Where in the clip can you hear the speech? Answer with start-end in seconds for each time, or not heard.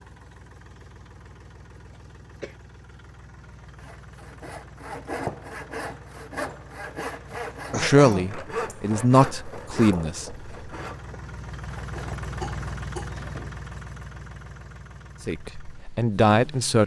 7.7-10.4, 15.2-16.8.